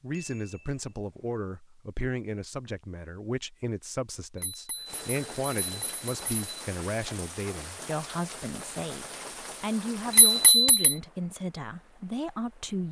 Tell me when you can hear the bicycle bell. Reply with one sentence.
You can hear the bicycle bell from 0.1 to 0.8 s, from 4.3 to 6.7 s and from 10.1 to 10.9 s.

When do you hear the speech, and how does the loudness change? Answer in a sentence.
The speech can be heard from 0.0 to 12.8 s, at a steady volume.